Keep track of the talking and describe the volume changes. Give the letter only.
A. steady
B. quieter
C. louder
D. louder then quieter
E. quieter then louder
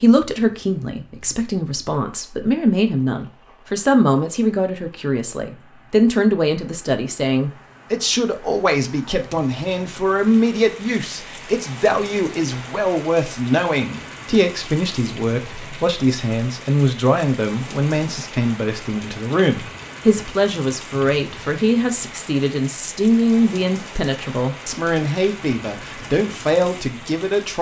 A.